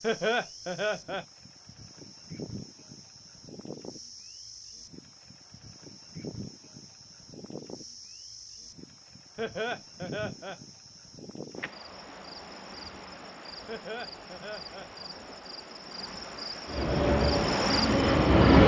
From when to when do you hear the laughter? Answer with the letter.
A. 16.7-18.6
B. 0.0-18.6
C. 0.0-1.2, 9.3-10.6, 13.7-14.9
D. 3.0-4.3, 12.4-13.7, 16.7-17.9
C.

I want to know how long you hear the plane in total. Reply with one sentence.
The plane can be heard for 2 seconds in total.